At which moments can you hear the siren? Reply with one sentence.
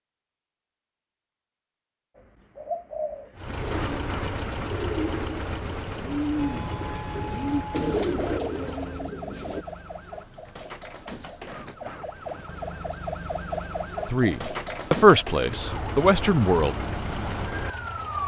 The siren can be heard from 6.3 to 18.2 s.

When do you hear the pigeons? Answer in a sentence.
You can hear the pigeons from 2.1 to 9.7 s.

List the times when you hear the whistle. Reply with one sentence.
You can't hear the whistle here.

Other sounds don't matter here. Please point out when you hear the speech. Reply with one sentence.
You can hear the speech from 14.1 to 16.8 s.